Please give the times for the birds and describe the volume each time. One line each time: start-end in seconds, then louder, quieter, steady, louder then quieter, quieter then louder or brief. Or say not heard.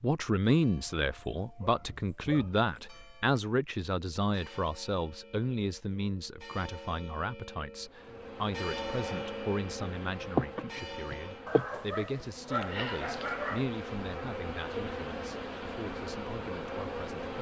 not heard.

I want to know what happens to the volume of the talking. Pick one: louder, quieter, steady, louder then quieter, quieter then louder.
quieter.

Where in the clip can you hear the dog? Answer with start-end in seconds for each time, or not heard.
1.6-2.5, 11.4-13.7.